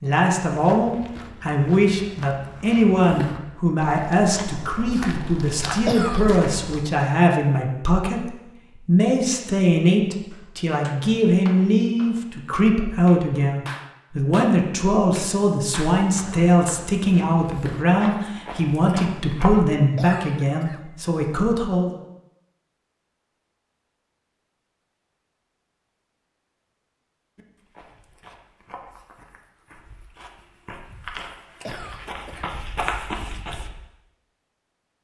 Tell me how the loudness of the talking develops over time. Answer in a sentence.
The loudness of the talking stays about the same.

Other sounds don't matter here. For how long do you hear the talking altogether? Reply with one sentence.
The talking can be heard for 22 seconds in total.